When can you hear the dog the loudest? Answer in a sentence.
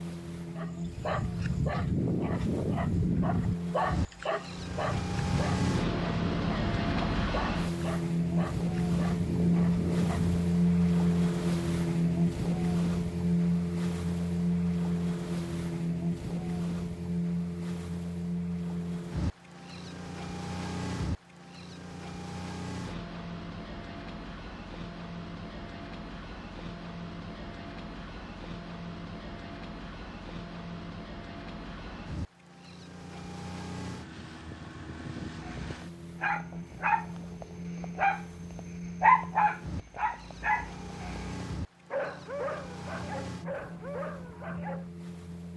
The loudest moment of the dog is at 39 seconds.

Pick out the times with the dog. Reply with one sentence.
You can hear the dog from 0.6 to 10.6 s and from 35.3 to 44.9 s.